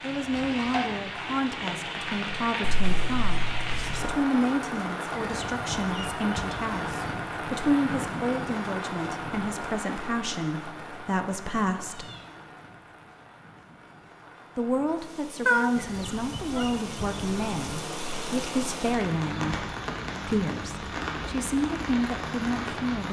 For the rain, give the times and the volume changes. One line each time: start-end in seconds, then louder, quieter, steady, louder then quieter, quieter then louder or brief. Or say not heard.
0.0-23.0 quieter then louder.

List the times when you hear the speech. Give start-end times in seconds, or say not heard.
0.0-12.1, 14.6-19.6, 20.2-23.0.